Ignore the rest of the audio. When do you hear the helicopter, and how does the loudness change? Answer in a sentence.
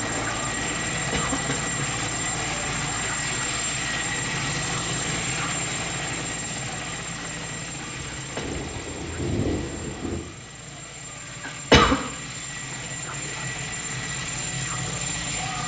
The helicopter can be heard from 0.0 to 15.6 s, getting quieter then louder.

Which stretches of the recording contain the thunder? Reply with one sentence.
The thunder can be heard from 7.8 to 10.2 s.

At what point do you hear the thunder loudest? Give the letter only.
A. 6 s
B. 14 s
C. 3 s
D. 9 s
D.